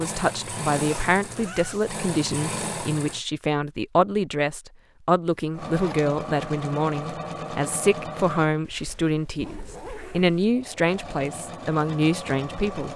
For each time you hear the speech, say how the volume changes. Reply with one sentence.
You can hear the speech from 0.0 to 12.9 s, at a steady volume.